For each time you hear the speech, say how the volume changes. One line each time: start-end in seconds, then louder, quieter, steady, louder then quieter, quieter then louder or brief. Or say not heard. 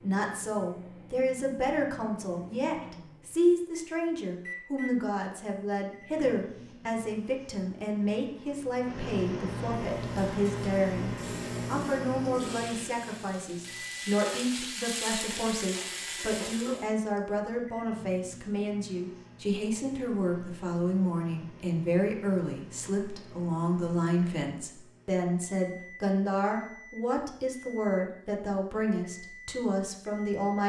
0.0-30.6 steady.